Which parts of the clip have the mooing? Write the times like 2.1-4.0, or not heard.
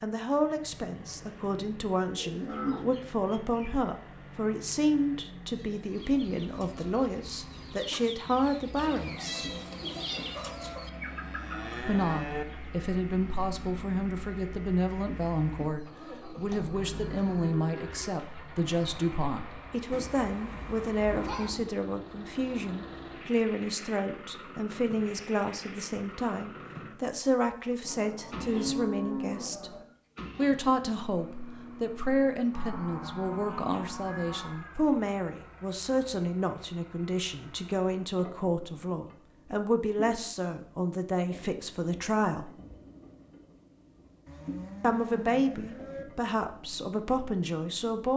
2.2-3.9, 10.9-12.4, 16.7-18.1, 27.8-29.9, 32.5-34.5, 44.2-46.0.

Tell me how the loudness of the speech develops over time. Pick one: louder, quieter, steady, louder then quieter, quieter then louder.
steady.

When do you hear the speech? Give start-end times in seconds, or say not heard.
0.0-9.5, 11.8-42.5, 44.8-48.1.